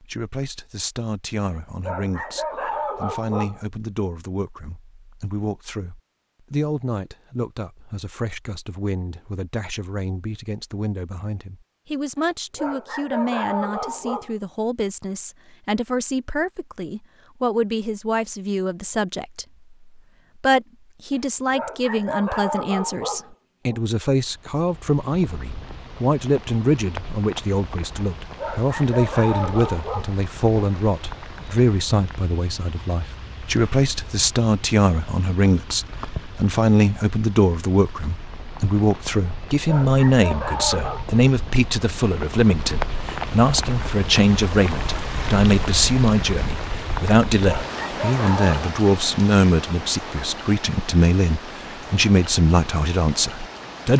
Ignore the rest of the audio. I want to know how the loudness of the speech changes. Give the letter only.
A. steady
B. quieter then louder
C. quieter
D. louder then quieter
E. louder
E.